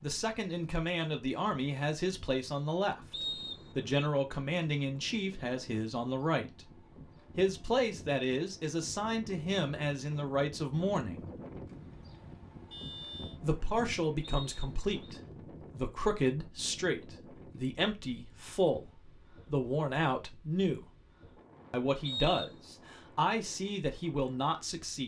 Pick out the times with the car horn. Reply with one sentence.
You can hear the car horn from 12.7 to 13.4 s.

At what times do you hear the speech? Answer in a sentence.
The speech can be heard from 0.0 to 6.7 s, from 7.3 to 11.3 s, from 13.4 to 20.9 s and from 21.7 to 25.0 s.